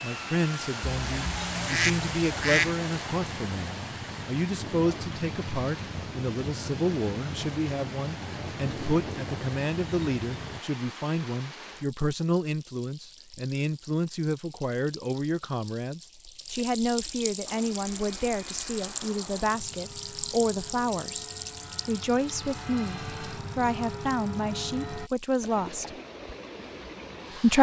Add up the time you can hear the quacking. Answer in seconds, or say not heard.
2 s.